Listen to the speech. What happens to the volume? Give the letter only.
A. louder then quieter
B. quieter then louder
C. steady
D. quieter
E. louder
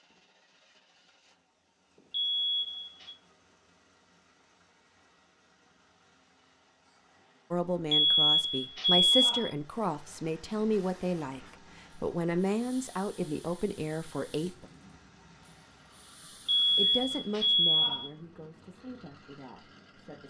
D.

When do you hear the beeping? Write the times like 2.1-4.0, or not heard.
2.1-3.1, 7.9-9.5, 16.4-18.1.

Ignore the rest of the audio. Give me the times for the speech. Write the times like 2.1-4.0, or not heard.
7.5-14.7, 16.2-20.2.